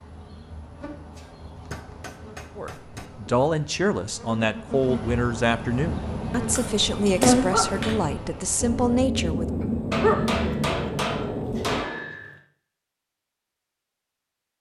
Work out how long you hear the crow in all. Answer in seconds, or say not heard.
not heard.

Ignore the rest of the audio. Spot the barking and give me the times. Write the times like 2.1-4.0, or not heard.
5.8-11.8.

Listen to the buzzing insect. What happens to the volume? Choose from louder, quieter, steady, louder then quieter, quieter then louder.
louder.